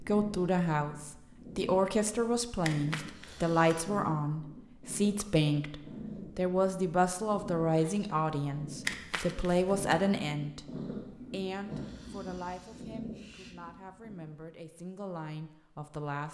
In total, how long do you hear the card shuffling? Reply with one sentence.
You can hear the card shuffling for 2 seconds altogether.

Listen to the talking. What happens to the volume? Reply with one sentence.
The volume of the talking goes down.